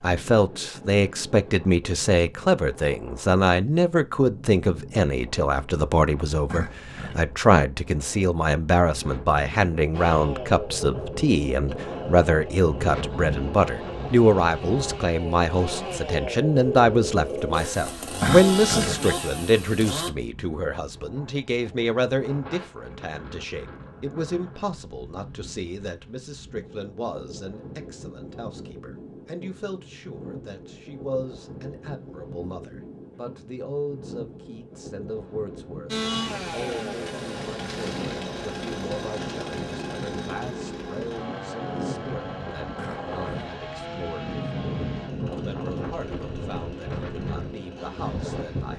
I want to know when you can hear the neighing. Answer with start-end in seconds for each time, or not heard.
6.5-7.2, 18.2-19.0, 42.8-43.5.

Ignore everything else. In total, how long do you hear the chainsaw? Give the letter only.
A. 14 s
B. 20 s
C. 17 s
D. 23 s
D.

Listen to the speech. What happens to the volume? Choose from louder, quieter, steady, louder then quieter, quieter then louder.
quieter.